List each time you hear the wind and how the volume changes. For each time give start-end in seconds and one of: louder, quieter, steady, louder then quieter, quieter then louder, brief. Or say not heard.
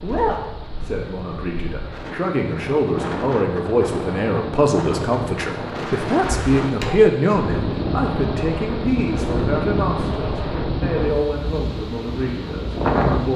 0.0-13.3 louder.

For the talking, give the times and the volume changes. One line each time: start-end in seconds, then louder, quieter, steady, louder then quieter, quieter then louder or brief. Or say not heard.
0.0-13.3 louder then quieter.